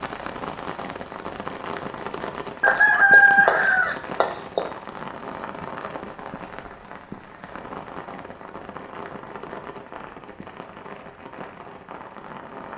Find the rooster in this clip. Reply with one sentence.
You can hear the rooster from 2.6 to 4.6 s.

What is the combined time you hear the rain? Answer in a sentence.
The rain can be heard for 13 seconds in total.